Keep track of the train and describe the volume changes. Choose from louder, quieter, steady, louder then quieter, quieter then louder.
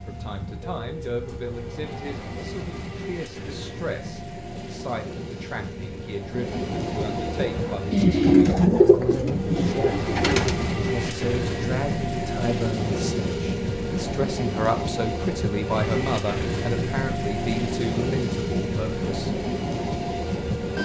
louder.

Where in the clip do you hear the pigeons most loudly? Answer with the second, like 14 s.
8 s.